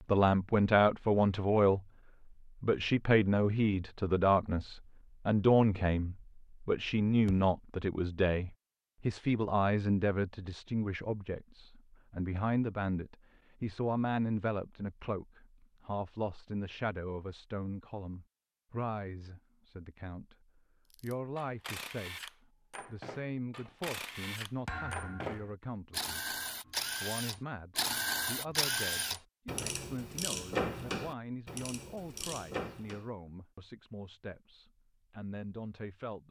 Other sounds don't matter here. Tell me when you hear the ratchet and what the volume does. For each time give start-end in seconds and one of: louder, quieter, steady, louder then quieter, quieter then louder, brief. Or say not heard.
20.9-33.0 louder.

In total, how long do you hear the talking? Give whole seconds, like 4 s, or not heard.
35 s.